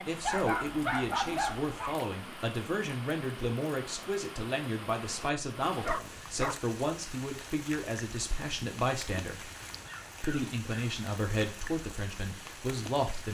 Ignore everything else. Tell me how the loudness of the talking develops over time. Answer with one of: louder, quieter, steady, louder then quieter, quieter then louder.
steady.